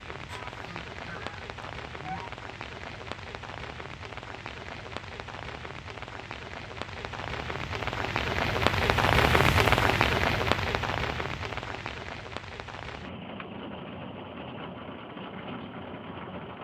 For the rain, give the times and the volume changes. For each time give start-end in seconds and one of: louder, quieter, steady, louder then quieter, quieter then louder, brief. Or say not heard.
0.0-16.5 louder then quieter.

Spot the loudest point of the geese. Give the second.
2 s.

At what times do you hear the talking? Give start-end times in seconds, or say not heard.
not heard.